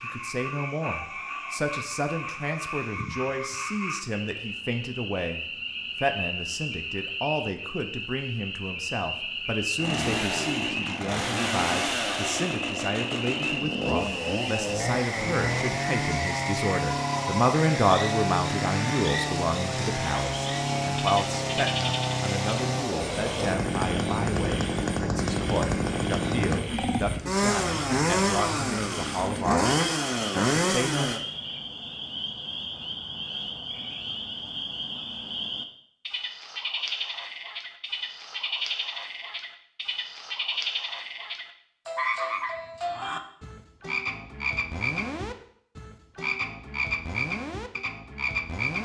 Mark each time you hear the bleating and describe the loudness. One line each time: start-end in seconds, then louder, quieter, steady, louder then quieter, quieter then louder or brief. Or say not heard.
not heard.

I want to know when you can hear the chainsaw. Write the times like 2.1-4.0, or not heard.
9.8-31.2.